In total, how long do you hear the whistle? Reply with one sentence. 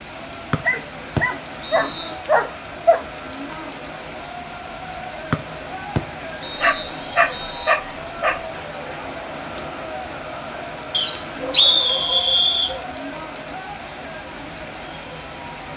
The whistle can be heard for 5 seconds in total.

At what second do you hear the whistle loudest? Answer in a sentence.
The loudest moment of the whistle is at 12 seconds.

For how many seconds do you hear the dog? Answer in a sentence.
The dog can be heard for 6 seconds in total.